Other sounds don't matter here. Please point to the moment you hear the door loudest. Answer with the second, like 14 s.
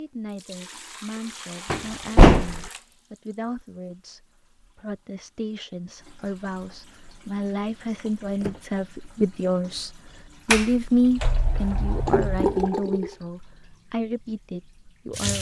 2 s.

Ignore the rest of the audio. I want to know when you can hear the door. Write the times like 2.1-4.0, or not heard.
1.7-2.7, 8.0-8.6, 10.5-12.7.